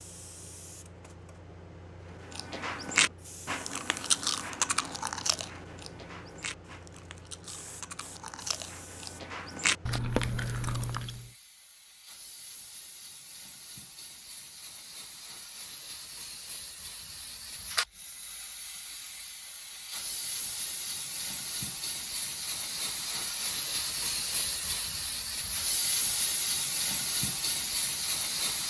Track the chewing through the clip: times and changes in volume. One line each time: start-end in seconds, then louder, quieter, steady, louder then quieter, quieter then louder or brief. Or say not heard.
2.3-11.3 quieter then louder.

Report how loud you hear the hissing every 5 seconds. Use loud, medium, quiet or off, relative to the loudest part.
quiet, quiet, quiet, medium, loud, loud.